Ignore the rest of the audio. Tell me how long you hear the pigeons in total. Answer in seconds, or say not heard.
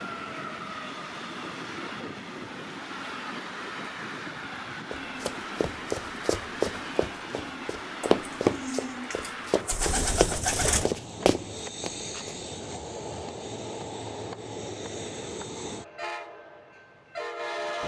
3 s.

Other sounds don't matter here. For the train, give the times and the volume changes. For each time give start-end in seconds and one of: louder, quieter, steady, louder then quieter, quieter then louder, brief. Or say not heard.
0.0-17.8 steady.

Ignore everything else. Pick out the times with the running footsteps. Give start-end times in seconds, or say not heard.
4.9-12.3.